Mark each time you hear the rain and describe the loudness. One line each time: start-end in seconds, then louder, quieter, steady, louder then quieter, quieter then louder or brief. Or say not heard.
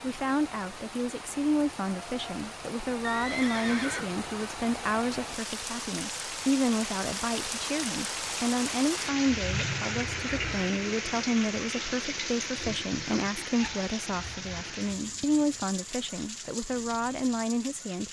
0.0-18.0 louder then quieter.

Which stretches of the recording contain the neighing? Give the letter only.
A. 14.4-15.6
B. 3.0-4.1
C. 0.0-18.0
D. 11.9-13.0
B.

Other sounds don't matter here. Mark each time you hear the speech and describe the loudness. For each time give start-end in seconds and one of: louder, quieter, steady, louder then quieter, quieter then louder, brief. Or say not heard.
0.0-18.0 steady.